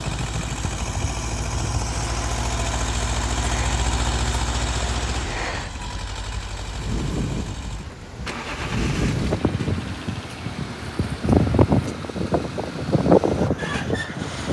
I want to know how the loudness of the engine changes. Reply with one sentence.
The volume of the engine goes down.